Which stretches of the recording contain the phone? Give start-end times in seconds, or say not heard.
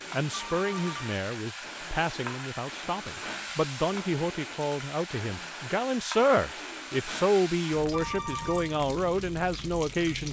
0.3-1.0, 7.9-8.8.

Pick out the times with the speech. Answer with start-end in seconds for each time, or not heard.
0.1-10.2.